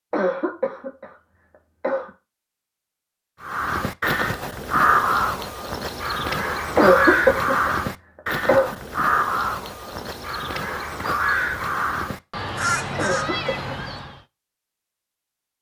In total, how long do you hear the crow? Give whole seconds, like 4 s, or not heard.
11 s.